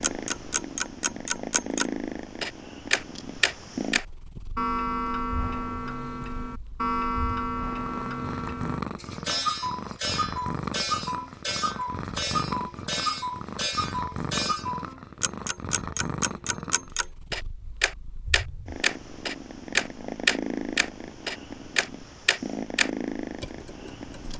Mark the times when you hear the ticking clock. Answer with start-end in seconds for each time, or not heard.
0.0-24.3.